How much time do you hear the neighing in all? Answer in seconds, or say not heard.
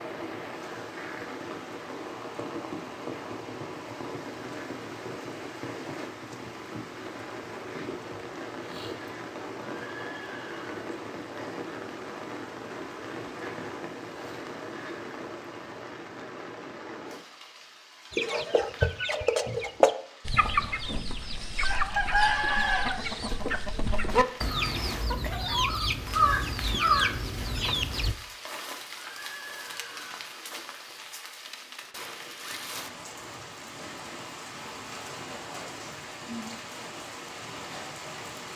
3 s.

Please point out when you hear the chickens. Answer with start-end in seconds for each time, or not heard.
18.1-28.1.